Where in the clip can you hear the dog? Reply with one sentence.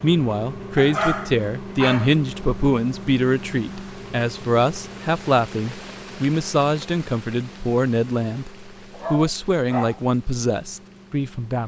The dog can be heard from 0.8 to 2.1 s and from 8.9 to 10.0 s.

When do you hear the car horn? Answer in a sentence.
You can't hear the car horn here.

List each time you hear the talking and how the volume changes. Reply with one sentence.
The talking can be heard from 0.0 to 11.6 s, at a steady volume.